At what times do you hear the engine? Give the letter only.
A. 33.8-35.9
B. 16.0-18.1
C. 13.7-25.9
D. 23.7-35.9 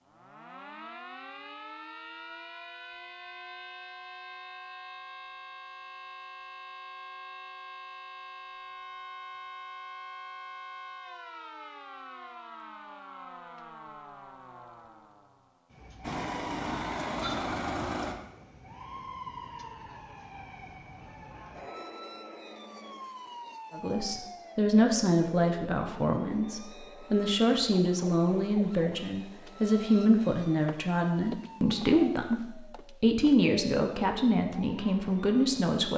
B.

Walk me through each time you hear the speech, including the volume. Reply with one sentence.
The speech can be heard from 23.7 to 35.9 s, at a steady volume.